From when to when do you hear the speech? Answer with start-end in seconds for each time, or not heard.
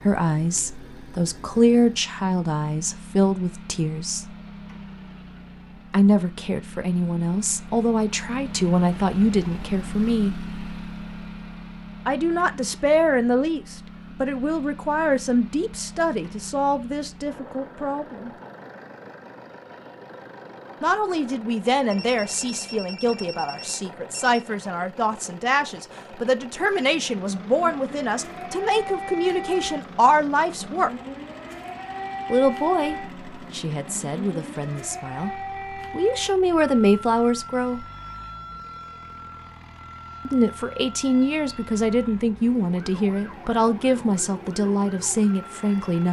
0.1-4.3, 5.9-10.4, 12.1-18.3, 20.8-30.9, 32.3-37.9, 40.2-46.0.